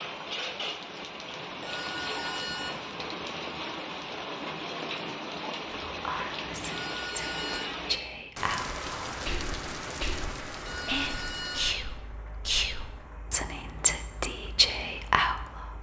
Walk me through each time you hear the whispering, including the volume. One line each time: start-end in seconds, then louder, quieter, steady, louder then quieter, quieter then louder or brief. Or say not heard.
5.8-15.7 louder.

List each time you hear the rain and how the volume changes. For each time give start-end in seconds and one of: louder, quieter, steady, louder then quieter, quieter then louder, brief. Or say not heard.
0.0-15.7 quieter.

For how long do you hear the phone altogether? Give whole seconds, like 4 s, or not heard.
3 s.